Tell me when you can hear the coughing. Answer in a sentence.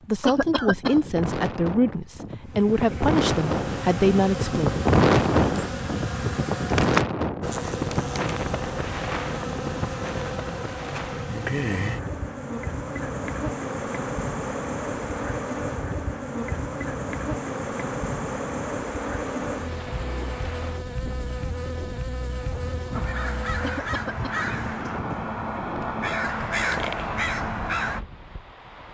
The coughing can be heard from 0.2 to 1.0 s and from 23.6 to 24.4 s.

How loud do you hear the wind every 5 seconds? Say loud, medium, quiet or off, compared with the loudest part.
loud, loud, quiet, quiet, quiet, quiet.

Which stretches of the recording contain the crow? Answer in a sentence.
You can hear the crow from 22.9 to 28.0 s.